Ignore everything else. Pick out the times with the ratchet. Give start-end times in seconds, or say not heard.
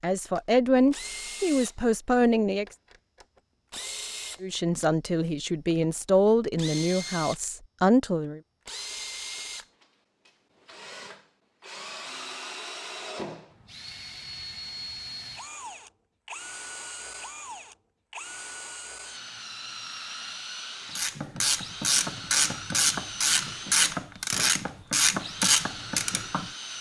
20.9-26.5.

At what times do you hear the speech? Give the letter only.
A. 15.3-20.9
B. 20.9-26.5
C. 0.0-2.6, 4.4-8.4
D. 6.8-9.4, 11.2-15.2
C.